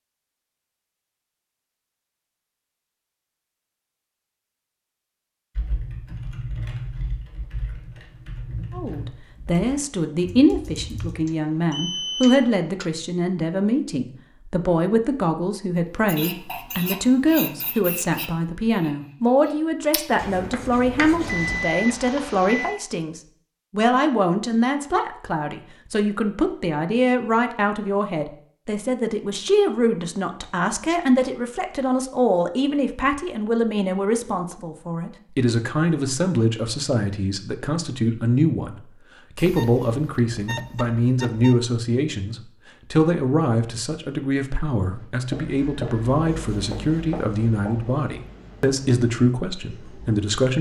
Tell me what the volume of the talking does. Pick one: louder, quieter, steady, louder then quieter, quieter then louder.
steady.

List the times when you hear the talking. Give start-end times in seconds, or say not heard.
8.7-50.5.